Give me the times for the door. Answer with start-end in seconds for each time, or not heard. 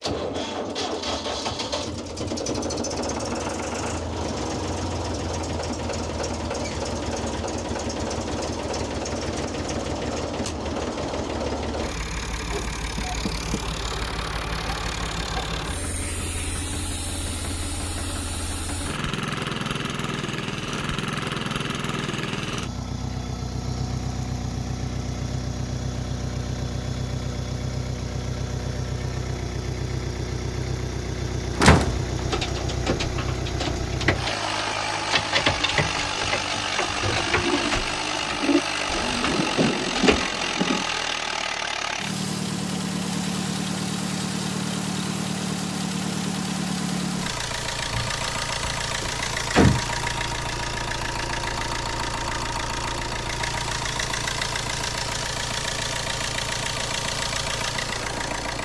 12.9-13.6, 31.6-32.6, 47.8-49.8.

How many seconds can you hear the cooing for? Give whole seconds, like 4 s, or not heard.
8 s.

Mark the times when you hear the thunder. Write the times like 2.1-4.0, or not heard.
39.2-40.9.